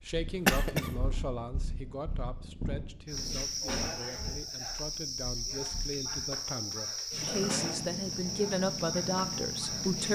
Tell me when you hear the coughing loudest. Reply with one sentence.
The loudest moment of the coughing is at 1 second.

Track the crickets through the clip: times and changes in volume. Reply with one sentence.
You can hear the crickets from 3.0 to 10.1 s, at a steady volume.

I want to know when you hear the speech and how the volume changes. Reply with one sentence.
The speech can be heard from 0.1 to 10.1 s, getting quieter then louder.